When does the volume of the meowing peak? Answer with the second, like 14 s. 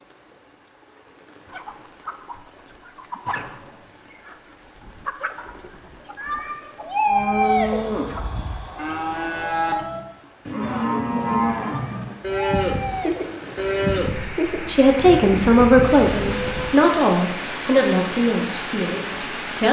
7 s.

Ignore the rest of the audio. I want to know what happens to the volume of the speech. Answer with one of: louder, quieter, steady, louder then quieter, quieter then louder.
quieter.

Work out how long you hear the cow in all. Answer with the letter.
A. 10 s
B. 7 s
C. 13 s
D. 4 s
A.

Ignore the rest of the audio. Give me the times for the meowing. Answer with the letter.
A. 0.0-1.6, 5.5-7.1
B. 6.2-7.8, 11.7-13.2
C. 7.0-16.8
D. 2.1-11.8
B.